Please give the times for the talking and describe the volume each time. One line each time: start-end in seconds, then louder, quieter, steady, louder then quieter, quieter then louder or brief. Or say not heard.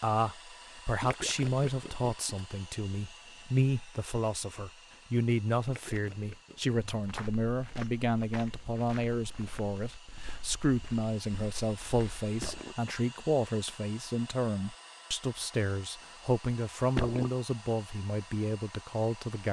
0.0-19.4 steady.